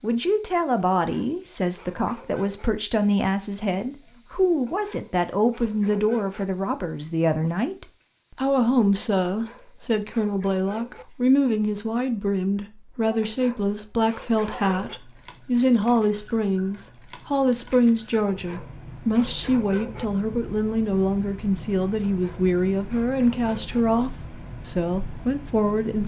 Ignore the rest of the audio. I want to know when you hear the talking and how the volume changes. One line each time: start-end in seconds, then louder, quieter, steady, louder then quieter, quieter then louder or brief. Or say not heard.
0.0-26.0 steady.